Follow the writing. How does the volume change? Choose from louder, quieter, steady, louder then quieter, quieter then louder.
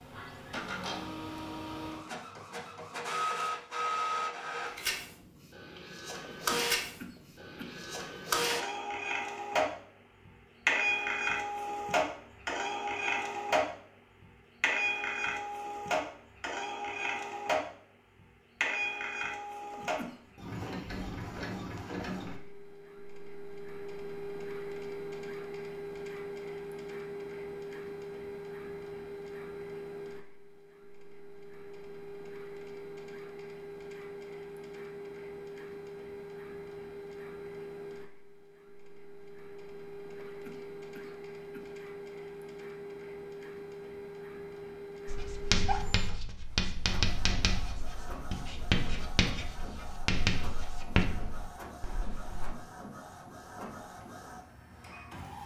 steady.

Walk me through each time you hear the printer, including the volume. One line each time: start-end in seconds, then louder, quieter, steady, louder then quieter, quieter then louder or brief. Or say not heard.
0.0-55.4 quieter.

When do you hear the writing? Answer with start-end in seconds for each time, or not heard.
45.0-52.5.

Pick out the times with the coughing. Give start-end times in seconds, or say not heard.
6.3-7.8, 19.7-20.4, 40.2-41.8.